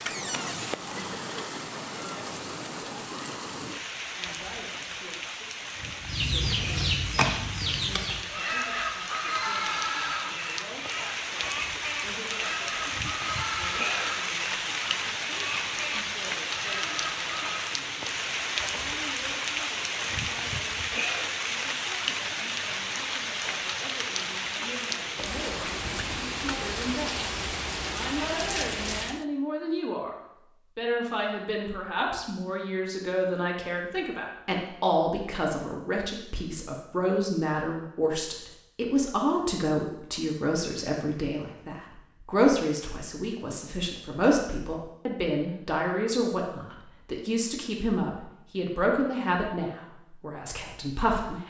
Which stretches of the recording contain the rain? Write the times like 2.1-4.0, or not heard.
0.0-29.2.